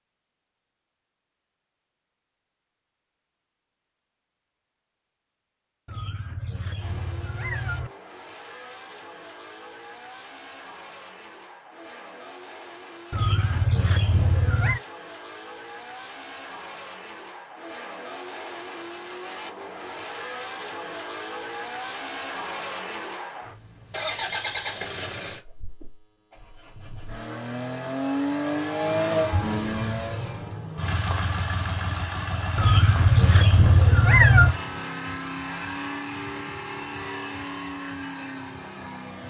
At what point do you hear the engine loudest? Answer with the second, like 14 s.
29 s.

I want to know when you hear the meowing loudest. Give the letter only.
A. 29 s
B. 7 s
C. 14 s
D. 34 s
D.